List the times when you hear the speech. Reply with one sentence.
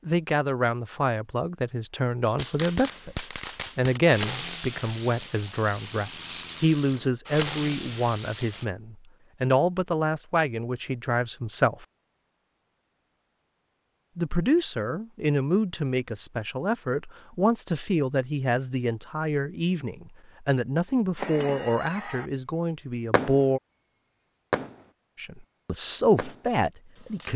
The speech can be heard from 0.1 to 11.8 s, from 14.2 to 23.6 s and from 25.1 to 27.3 s.